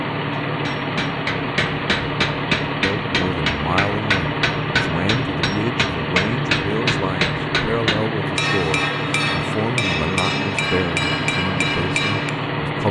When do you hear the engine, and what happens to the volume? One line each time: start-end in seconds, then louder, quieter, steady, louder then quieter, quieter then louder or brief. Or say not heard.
0.0-12.8 steady.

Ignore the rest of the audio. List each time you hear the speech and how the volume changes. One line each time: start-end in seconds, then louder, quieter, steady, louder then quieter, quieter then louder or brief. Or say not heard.
2.8-12.8 steady.